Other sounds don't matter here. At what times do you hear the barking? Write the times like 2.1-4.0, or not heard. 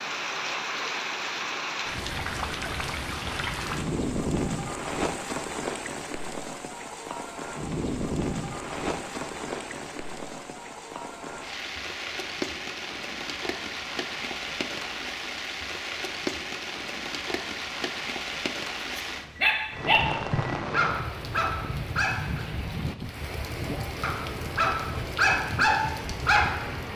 18.9-22.4, 24.0-26.9.